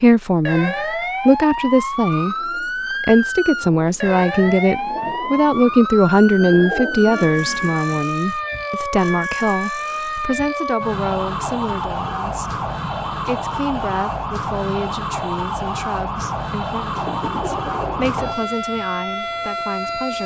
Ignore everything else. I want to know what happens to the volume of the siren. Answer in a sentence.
The volume of the siren stays about the same.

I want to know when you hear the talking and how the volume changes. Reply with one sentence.
You can hear the talking from 0.0 to 20.2 s, getting quieter.